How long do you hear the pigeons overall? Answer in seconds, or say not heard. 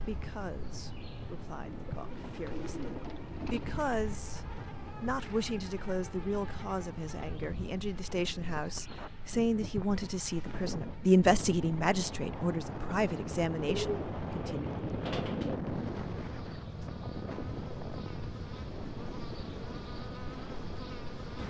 4 s.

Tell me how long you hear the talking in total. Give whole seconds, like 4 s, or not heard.
15 s.